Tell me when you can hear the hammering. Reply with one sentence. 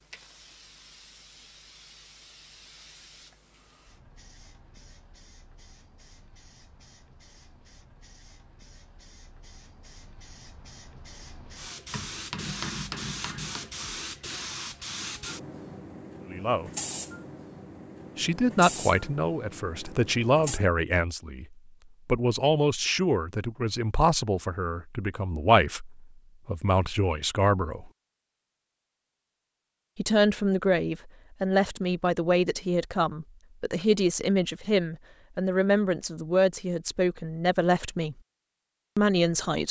The hammering can be heard from 11.9 to 13.7 s.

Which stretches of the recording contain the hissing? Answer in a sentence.
You can hear the hissing from 0.0 to 20.6 s.